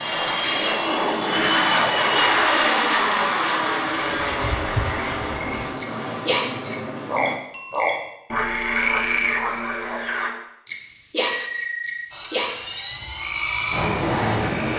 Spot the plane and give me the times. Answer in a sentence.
The plane can be heard from 0.0 to 7.4 s and from 12.1 to 14.7 s.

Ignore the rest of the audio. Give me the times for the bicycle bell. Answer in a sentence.
The bicycle bell can be heard from 0.7 to 1.1 s, from 7.5 to 8.2 s and from 11.2 to 12.1 s.